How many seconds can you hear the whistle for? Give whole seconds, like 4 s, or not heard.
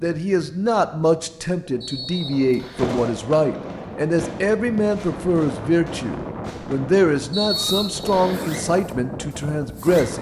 2 s.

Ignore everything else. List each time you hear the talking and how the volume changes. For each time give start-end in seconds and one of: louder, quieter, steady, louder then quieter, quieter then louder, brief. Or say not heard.
0.0-10.1 steady.